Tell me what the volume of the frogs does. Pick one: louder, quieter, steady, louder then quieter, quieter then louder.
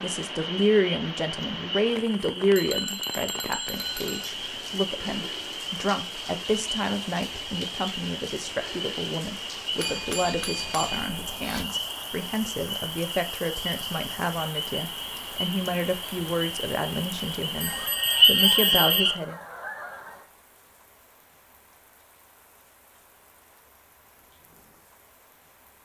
louder.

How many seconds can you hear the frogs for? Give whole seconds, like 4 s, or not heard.
19 s.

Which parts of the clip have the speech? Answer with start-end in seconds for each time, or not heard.
0.0-19.4.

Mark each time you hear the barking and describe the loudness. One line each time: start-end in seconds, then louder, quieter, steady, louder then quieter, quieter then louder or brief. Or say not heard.
not heard.